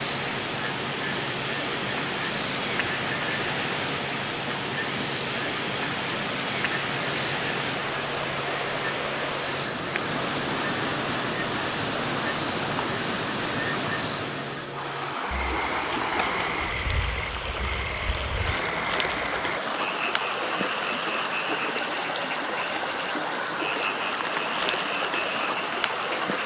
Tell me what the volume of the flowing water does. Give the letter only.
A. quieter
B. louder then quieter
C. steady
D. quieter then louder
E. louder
C.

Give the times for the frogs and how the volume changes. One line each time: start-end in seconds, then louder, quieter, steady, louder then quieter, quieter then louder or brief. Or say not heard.
0.0-26.4 steady.